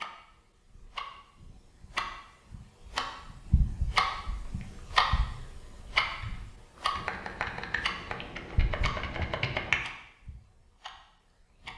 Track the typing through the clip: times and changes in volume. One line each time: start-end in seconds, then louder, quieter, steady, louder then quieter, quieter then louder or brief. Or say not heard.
4.1-9.8 louder.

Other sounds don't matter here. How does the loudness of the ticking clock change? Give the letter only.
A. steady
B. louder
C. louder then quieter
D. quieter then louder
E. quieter
C.